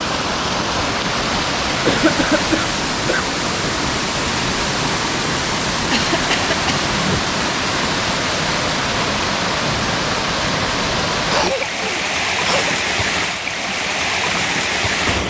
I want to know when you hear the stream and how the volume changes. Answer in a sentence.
The stream can be heard from 0.0 to 15.2 s, at a steady volume.